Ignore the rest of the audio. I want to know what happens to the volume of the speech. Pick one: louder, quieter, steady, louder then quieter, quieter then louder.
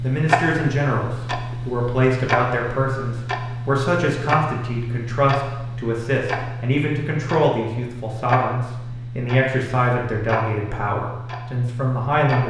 steady.